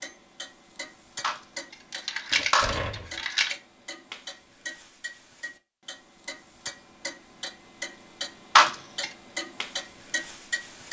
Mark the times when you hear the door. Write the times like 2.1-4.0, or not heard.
2.3-3.2.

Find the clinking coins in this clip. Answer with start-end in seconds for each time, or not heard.
1.2-3.5, 8.6-9.1.